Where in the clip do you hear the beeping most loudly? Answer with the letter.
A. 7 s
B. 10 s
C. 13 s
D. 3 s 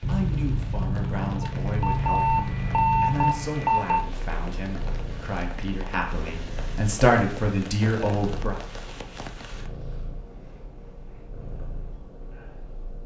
D.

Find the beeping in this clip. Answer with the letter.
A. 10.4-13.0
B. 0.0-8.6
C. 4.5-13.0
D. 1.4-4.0
D.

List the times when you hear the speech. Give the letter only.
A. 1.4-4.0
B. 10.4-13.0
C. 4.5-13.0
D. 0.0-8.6
D.